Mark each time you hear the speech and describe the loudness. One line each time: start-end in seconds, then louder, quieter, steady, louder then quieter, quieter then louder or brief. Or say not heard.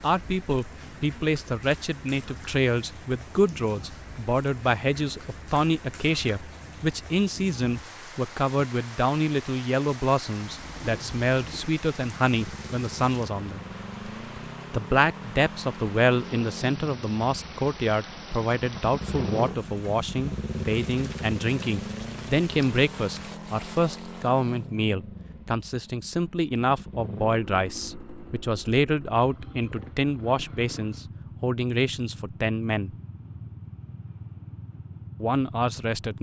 0.0-13.6 steady
14.7-33.0 steady
35.1-36.1 brief.